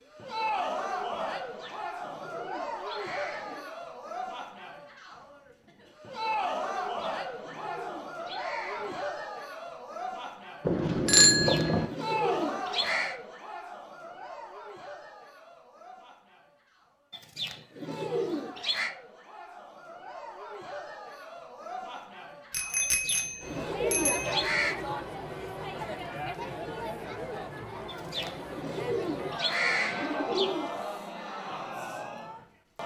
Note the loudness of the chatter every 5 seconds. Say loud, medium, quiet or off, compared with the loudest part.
loud, loud, loud, quiet, loud, loud, loud.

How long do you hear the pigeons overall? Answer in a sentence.
You can hear the pigeons for 13 seconds altogether.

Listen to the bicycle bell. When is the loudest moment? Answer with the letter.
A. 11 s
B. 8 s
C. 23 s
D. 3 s
A.